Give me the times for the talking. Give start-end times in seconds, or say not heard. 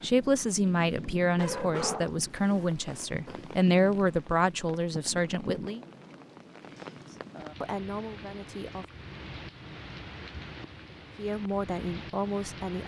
0.0-5.8, 7.6-8.8, 11.2-12.8.